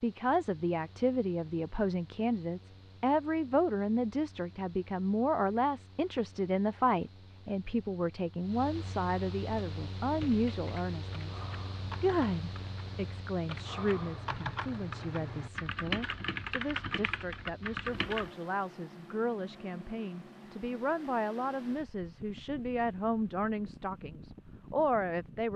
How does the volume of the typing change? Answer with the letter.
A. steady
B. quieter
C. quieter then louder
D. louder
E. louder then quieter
D.